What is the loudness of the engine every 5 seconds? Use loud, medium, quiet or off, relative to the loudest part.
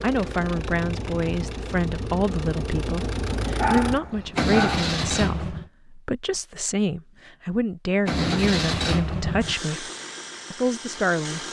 loud, loud, medium.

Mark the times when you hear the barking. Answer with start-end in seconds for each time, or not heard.
3.5-5.0.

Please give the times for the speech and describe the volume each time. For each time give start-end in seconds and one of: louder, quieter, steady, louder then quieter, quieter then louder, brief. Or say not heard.
0.0-9.9 steady
10.5-11.4 brief.